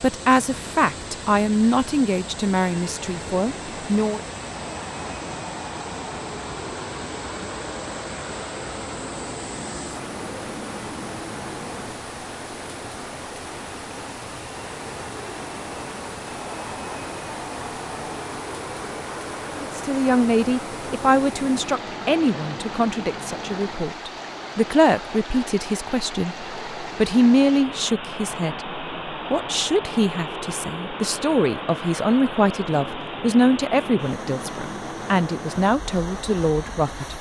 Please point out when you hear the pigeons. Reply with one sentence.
You can't hear the pigeons here.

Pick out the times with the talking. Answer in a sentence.
You can hear the talking from 0.0 to 4.2 s and from 19.6 to 37.1 s.